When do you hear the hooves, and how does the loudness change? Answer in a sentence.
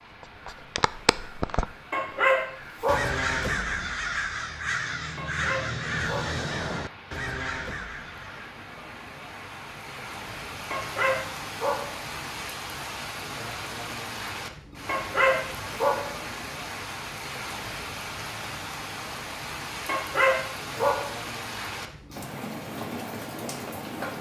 The hooves can't be heard in this clip.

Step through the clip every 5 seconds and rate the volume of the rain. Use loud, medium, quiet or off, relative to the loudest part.
quiet, medium, loud, loud, loud.